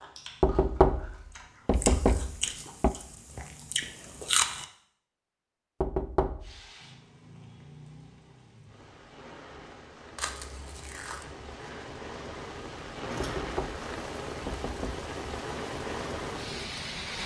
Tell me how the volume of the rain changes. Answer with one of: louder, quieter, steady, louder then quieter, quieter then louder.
louder.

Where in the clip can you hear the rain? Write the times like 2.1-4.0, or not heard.
6.4-17.2.